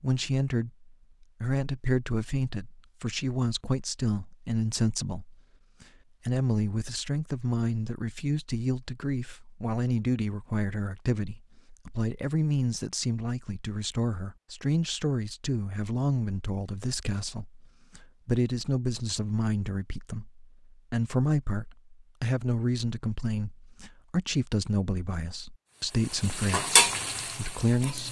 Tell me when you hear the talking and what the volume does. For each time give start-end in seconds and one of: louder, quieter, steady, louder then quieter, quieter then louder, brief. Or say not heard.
0.0-28.0 steady.